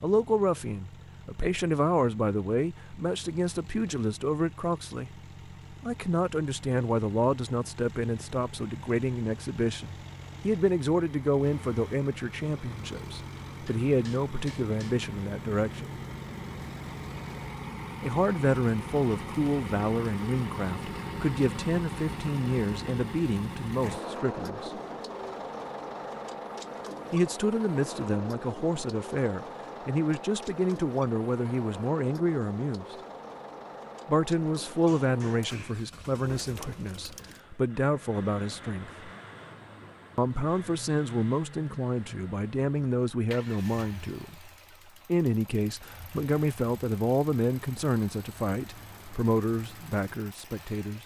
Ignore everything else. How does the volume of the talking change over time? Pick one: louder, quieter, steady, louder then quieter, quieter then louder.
steady.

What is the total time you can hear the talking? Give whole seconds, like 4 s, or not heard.
44 s.